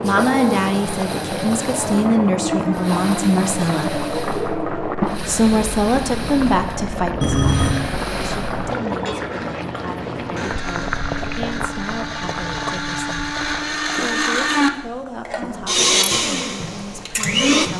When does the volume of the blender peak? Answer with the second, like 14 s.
16 s.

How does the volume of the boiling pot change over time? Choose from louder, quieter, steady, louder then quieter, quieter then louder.
quieter.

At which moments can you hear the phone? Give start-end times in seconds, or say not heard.
7.2-7.8.